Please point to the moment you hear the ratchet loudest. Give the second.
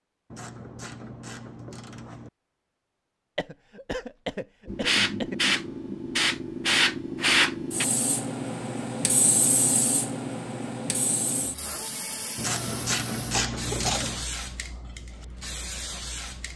13 s.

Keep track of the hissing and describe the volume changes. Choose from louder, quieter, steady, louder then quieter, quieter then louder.
quieter.